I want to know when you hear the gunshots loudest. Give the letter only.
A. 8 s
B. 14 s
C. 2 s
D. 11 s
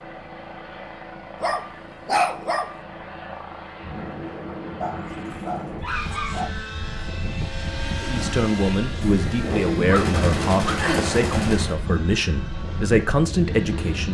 D.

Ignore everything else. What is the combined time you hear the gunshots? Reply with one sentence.
The gunshots can be heard for 3 seconds in total.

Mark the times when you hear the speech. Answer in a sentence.
The speech can be heard from 8.0 to 14.1 s.